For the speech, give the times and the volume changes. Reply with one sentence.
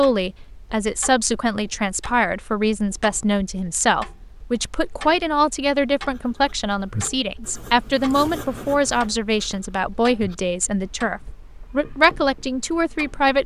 You can hear the speech from 0.0 to 13.4 s, at a steady volume.